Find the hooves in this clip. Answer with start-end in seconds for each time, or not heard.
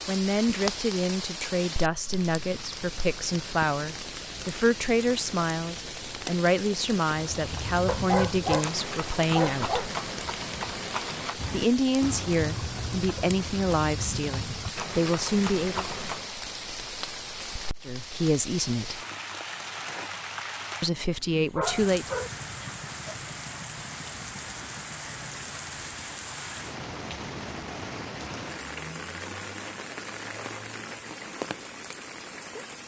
7.1-16.3.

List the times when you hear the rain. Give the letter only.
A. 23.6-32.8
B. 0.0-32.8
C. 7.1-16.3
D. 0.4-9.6
B.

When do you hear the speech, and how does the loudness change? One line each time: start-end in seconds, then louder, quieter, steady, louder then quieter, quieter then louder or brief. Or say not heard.
0.1-9.8 steady
11.5-15.8 quieter then louder
17.9-19.0 brief
20.8-22.1 brief.